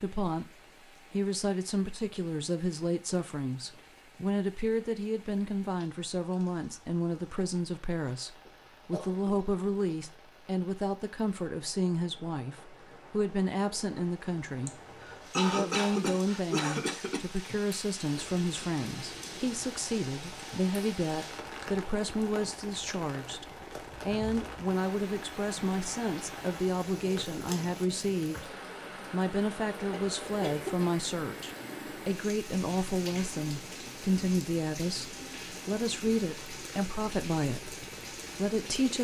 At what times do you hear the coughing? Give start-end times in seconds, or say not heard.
8.4-9.9, 14.7-17.2, 29.9-31.1.